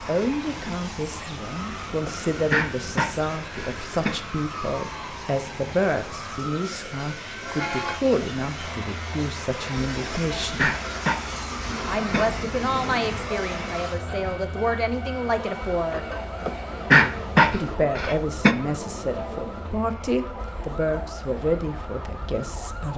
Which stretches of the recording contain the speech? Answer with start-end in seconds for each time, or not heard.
0.1-10.7, 11.8-16.1, 17.4-22.9.